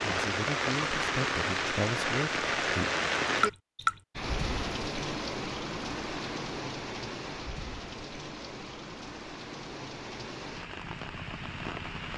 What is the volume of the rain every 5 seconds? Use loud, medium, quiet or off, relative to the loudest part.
loud, medium, medium.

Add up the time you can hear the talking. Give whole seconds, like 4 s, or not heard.
3 s.